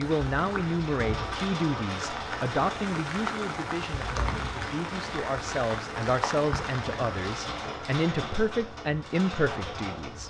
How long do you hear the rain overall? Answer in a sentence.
The rain can be heard for 8 seconds in total.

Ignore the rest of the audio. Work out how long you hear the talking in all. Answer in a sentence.
You can hear the talking for 10 seconds altogether.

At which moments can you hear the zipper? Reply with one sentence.
You can't hear the zipper here.